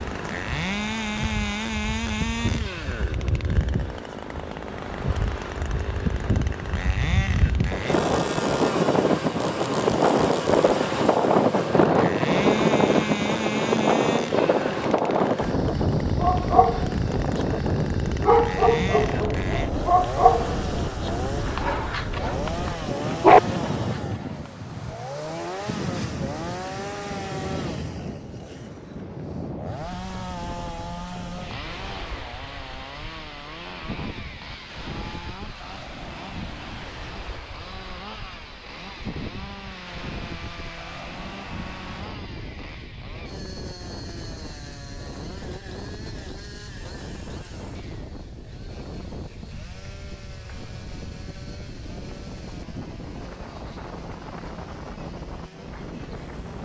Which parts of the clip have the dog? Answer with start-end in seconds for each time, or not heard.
16.1-17.4, 18.2-24.0.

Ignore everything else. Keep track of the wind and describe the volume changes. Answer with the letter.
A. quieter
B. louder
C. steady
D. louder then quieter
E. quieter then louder
A.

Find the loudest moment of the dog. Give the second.
23 s.